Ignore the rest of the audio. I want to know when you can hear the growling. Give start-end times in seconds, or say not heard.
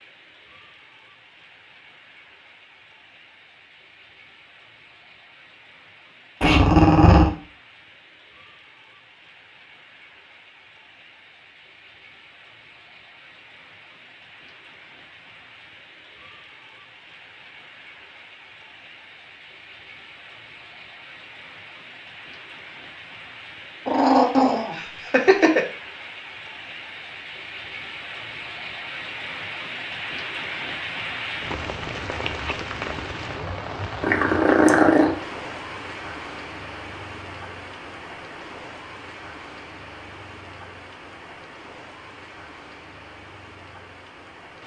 6.4-7.3, 23.9-25.6, 34.0-35.1.